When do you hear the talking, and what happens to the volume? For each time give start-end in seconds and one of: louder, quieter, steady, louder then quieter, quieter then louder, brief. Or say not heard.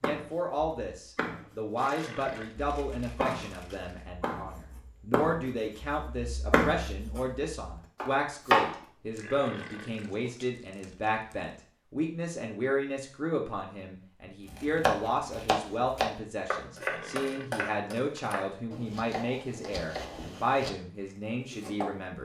0.0-22.2 steady.